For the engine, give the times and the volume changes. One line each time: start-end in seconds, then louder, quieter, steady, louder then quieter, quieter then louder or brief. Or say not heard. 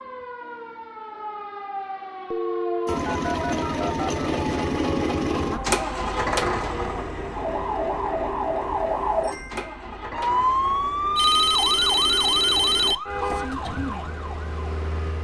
2.9-12.9 quieter.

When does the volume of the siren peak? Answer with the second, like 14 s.
11 s.